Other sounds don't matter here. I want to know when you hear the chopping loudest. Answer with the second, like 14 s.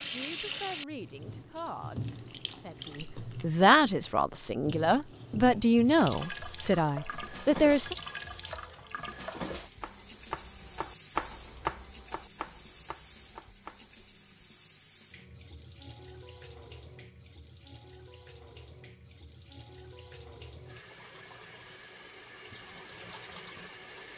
11 s.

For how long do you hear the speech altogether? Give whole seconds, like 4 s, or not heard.
8 s.